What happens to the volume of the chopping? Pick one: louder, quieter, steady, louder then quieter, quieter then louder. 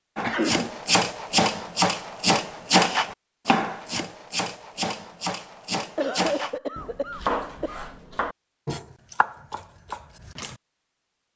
quieter.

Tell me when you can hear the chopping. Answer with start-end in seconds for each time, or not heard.
0.1-10.6.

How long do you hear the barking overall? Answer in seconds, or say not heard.
not heard.